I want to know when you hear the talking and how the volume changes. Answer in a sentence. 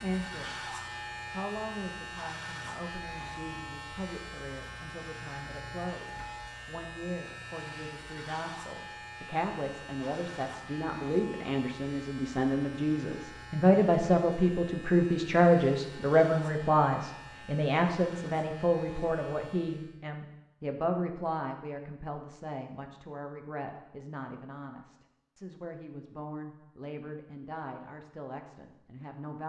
The talking can be heard briefly from 0.0 to 0.6 s; and from 1.3 to 29.4 s, getting louder then quieter.